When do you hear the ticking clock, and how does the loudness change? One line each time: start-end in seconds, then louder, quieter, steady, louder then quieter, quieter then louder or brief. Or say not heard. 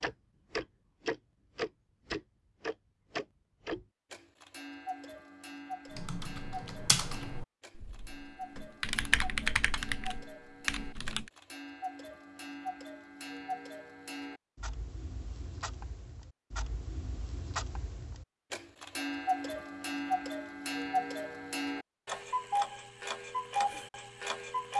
0.0-24.7 quieter then louder.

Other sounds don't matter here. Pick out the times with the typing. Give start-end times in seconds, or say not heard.
5.8-11.3.